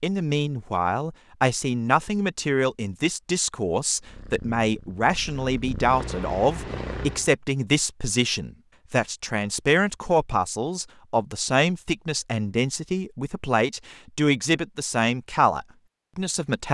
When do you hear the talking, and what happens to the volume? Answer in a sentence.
You can hear the talking from 0.0 to 16.6 s, at a steady volume.